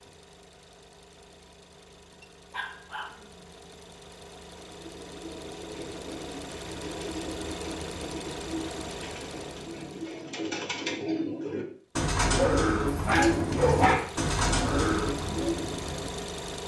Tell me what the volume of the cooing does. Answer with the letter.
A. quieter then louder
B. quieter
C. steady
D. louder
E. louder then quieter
D.